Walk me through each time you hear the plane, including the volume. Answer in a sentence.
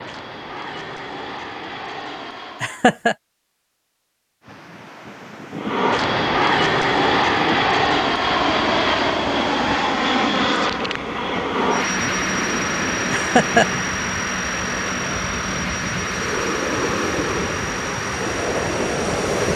The plane can be heard briefly from 0.0 to 2.9 s; and from 5.5 to 19.5 s, getting quieter.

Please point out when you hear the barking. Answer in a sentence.
The barking can't be heard in this clip.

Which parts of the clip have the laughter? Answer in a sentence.
You can hear the laughter from 2.6 to 3.1 s and from 13.1 to 13.7 s.